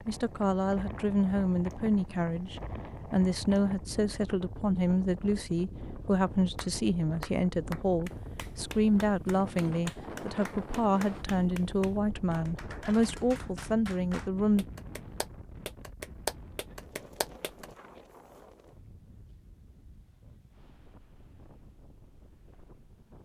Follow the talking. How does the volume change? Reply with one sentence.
The loudness of the talking stays about the same.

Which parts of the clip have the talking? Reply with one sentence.
The talking can be heard from 0.1 to 14.7 s.